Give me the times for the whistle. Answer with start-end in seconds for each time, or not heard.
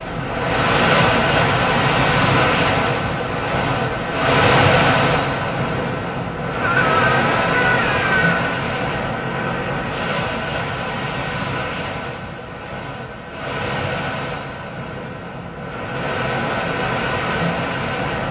not heard.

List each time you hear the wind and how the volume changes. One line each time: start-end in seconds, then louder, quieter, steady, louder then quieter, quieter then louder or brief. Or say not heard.
0.0-18.2 quieter.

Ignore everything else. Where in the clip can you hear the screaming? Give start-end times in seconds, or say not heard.
6.6-8.6.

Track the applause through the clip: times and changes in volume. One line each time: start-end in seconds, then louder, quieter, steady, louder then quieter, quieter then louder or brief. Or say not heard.
not heard.